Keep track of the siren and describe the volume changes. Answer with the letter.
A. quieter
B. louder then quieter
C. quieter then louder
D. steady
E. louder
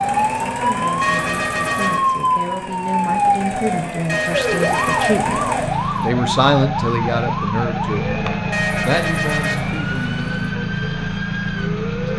A.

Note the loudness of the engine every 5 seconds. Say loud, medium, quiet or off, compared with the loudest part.
medium, loud, loud.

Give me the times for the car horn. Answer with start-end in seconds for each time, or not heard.
1.0-2.0, 4.0-6.1, 8.5-10.5.